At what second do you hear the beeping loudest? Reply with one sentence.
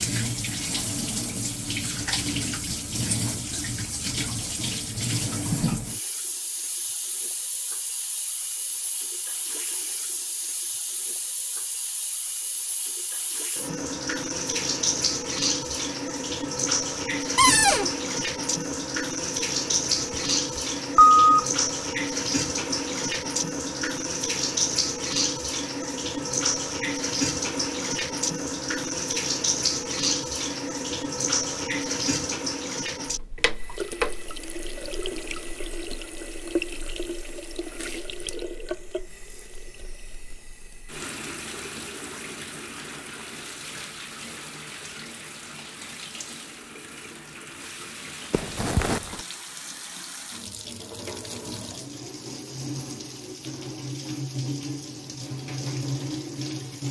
The volume of the beeping peaks at 21 seconds.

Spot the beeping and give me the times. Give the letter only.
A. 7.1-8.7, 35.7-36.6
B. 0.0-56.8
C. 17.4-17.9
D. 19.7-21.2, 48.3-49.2
D.